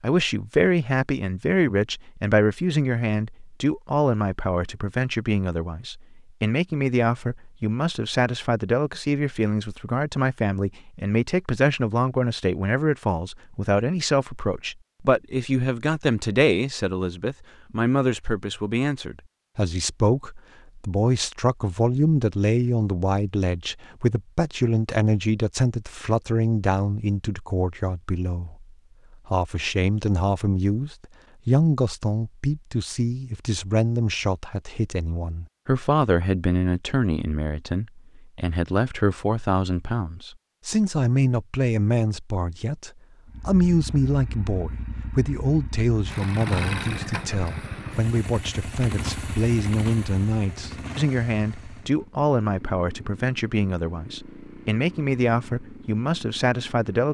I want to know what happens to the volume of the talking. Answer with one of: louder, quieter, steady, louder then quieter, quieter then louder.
steady.